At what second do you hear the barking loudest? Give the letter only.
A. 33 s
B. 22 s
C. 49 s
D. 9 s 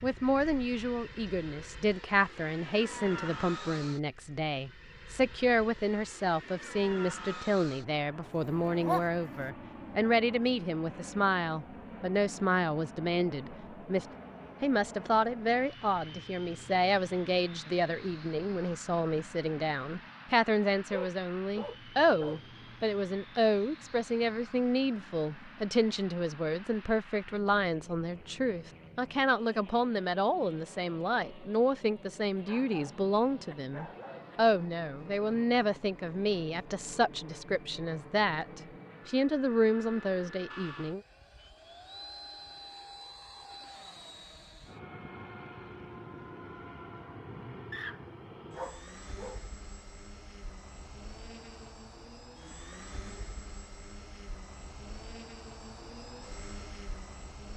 D.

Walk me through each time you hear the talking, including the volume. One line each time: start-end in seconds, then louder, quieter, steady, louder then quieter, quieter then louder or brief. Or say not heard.
0.0-41.0 steady.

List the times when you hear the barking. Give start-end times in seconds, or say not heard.
8.2-9.4, 20.9-22.4, 32.4-34.4, 47.7-49.5.